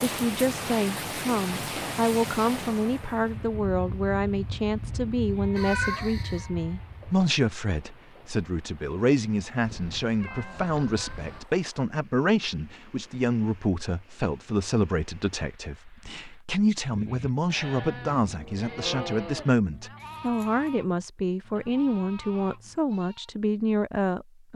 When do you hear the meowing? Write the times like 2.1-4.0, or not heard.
5.5-6.5, 9.7-11.4, 20.0-20.6.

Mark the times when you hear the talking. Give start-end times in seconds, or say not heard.
0.0-24.5.